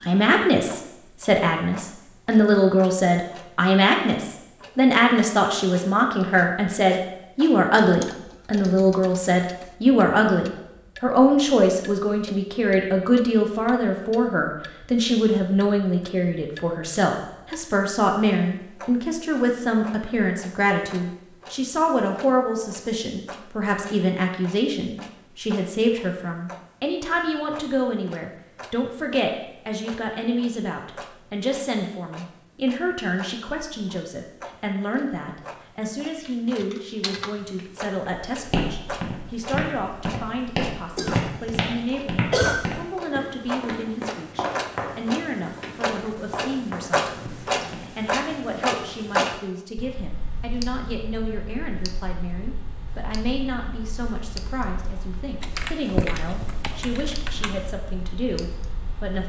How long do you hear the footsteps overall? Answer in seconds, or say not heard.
10 s.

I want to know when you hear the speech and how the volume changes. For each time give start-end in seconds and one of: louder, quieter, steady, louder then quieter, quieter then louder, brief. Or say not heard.
0.0-59.2 quieter.